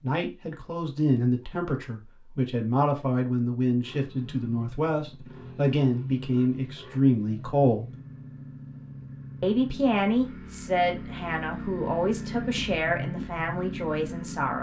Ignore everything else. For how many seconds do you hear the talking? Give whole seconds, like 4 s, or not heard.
13 s.